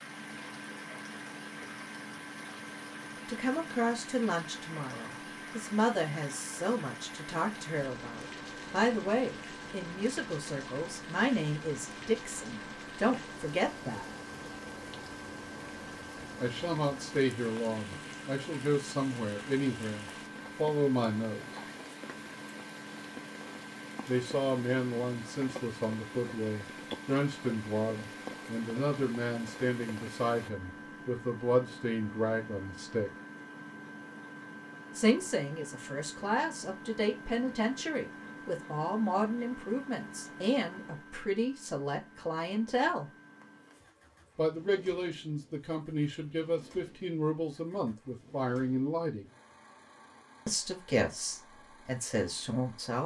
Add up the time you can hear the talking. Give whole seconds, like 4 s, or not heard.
41 s.